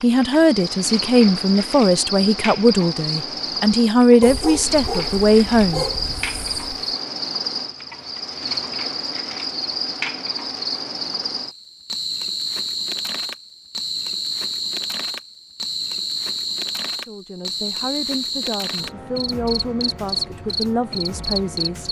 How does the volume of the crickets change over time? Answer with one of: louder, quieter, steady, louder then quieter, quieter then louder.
steady.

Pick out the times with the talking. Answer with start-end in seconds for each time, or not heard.
0.0-5.8, 16.9-21.8.